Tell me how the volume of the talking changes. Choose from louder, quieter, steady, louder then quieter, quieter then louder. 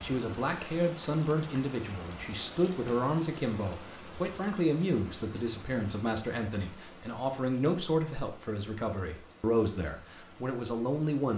steady.